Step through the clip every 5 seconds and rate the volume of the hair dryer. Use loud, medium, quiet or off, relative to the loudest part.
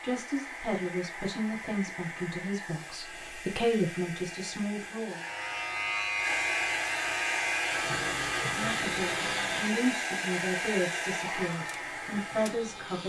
medium, loud, loud.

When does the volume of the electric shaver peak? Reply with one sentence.
The loudest moment of the electric shaver is at 6 seconds.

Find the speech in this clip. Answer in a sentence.
The speech can be heard from 0.0 to 5.2 s and from 8.4 to 13.0 s.